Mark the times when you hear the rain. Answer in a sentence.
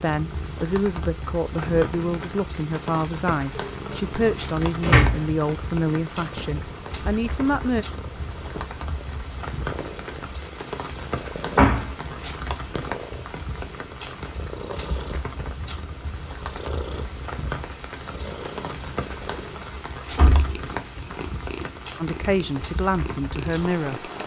The rain can be heard from 0.0 to 24.2 s.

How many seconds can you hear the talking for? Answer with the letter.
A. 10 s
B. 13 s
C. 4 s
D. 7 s
A.